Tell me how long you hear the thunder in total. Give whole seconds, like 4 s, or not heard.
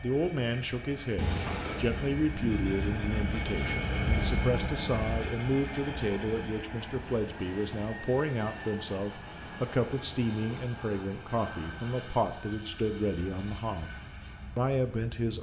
4 s.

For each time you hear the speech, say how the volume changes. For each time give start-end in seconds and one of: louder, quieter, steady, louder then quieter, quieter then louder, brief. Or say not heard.
0.0-13.9 steady
14.6-15.3 brief.